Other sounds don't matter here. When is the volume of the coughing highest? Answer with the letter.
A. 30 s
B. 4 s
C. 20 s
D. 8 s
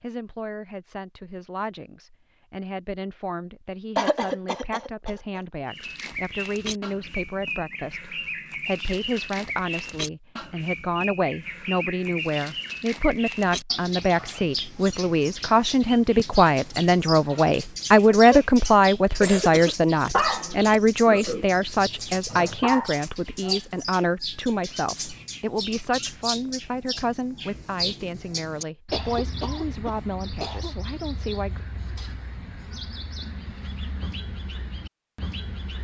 B.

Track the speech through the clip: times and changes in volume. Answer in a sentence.
The speech can be heard from 0.0 to 31.6 s, getting louder then quieter.